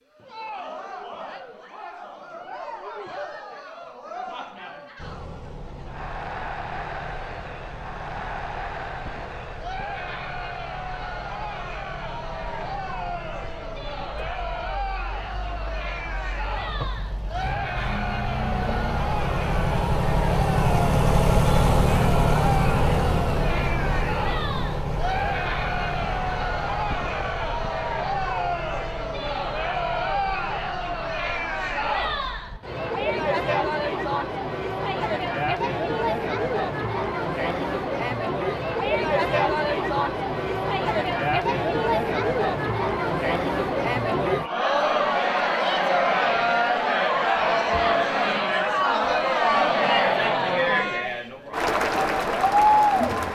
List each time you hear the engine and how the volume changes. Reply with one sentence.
The engine can be heard from 5.0 to 32.6 s, getting louder then quieter.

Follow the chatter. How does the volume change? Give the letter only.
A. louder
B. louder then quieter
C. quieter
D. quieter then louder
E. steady
A.